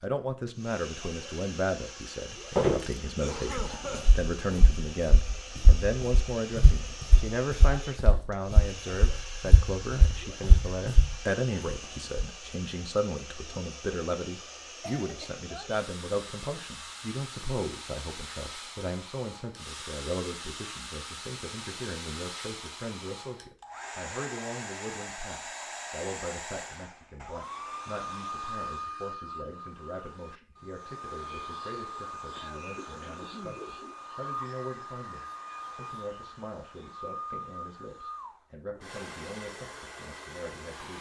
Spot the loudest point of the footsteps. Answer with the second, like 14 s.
3 s.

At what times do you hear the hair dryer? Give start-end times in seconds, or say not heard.
0.0-40.9.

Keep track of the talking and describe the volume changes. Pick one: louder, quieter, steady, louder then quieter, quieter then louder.
quieter.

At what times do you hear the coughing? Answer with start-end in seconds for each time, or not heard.
3.0-4.2, 14.8-15.4, 32.4-33.6.